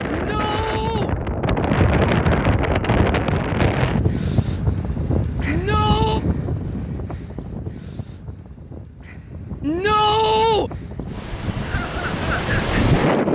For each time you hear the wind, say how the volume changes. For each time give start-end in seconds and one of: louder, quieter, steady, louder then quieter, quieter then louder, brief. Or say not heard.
0.0-13.2 quieter then louder.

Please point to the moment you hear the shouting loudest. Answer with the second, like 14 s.
10 s.